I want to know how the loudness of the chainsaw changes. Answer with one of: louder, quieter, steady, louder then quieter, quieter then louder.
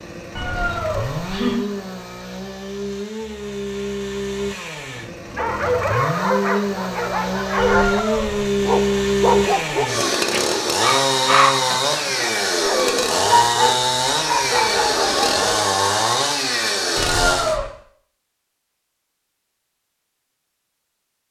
louder.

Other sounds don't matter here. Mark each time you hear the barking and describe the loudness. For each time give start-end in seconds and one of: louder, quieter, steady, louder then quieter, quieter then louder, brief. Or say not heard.
5.3-15.6 steady.